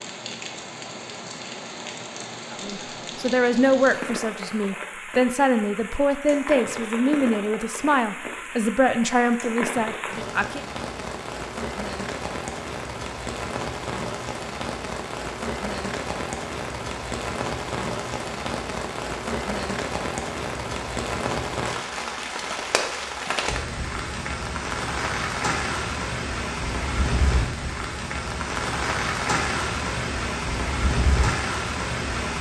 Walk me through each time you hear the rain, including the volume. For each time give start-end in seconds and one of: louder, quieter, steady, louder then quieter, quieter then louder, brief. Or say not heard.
0.0-32.3 louder.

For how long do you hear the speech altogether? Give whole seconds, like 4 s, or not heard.
8 s.